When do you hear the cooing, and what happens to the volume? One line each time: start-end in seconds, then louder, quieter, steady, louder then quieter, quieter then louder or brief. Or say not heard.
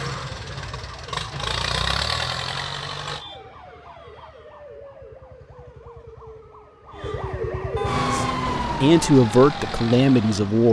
not heard.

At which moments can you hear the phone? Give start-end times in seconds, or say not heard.
not heard.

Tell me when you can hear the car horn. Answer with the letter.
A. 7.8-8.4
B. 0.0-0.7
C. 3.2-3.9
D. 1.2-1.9
A.